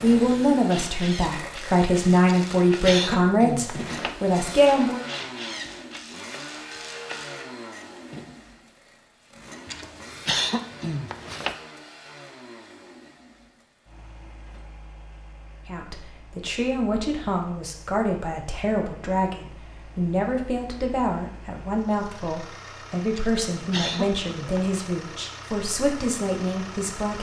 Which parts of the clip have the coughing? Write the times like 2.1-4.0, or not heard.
2.2-4.2, 9.7-11.6, 23.1-24.8.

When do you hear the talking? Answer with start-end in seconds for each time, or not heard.
0.0-5.0, 15.7-27.1.